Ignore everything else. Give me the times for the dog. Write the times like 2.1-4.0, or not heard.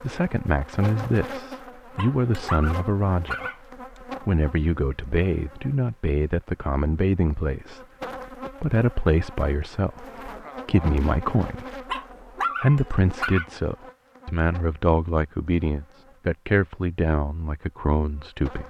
1.9-3.6, 11.8-13.4.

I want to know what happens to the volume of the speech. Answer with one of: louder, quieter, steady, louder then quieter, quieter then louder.
steady.